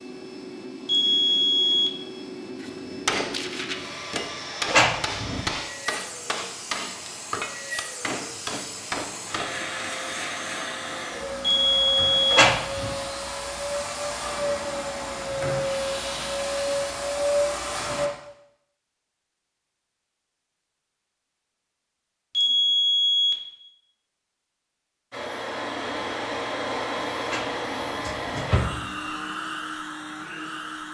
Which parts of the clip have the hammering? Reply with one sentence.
You can hear the hammering from 2.6 to 9.6 s.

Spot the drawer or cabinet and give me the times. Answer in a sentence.
The drawer or cabinet can be heard from 4.7 to 5.5 s, from 12.3 to 12.9 s and from 27.2 to 28.8 s.